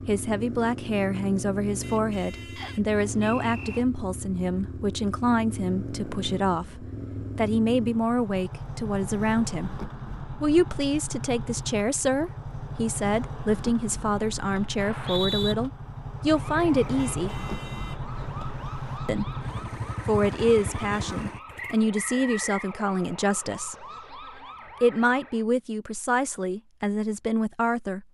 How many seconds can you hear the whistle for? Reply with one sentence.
You can hear the whistle for 3 seconds altogether.